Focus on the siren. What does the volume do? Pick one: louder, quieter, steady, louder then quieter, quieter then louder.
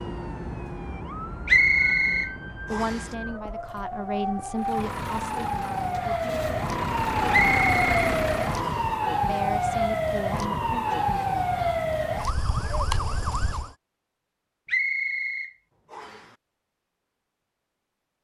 louder.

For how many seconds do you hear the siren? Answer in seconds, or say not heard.
14 s.